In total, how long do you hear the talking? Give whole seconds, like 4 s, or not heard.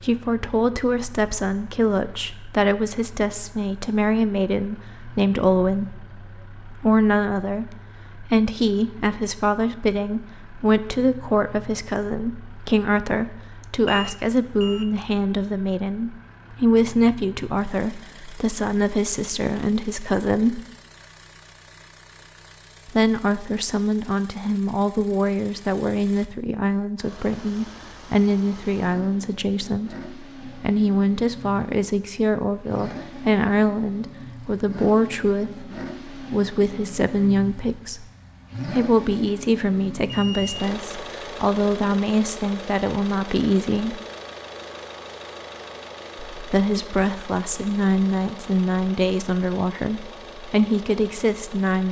47 s.